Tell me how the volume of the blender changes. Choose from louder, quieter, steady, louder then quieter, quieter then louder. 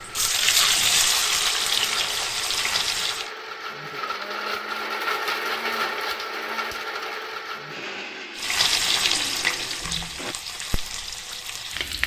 louder then quieter.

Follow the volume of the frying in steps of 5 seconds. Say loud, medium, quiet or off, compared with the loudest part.
loud, loud, medium.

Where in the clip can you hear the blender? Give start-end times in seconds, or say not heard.
0.0-10.3.